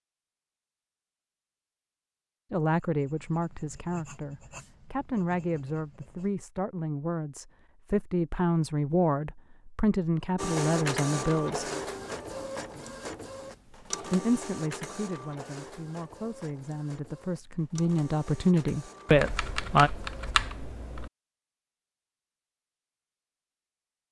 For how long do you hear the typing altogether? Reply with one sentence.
You can hear the typing for 2 seconds altogether.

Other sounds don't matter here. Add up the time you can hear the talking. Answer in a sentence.
The talking can be heard for 15 seconds in total.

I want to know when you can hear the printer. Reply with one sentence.
You can hear the printer from 10.3 to 20.4 s.